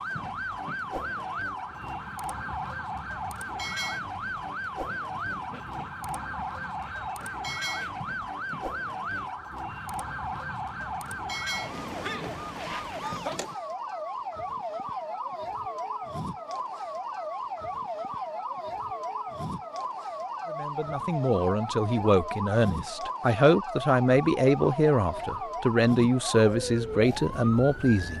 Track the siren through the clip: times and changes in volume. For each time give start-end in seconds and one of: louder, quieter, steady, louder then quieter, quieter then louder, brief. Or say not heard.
0.0-28.1 steady.